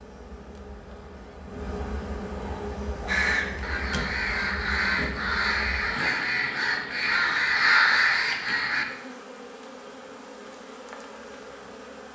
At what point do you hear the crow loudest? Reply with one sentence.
The loudest moment of the crow is at 8 seconds.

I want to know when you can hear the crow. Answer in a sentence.
The crow can be heard from 2.4 to 8.8 s.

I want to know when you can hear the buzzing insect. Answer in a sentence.
The buzzing insect can be heard from 0.0 to 12.0 s.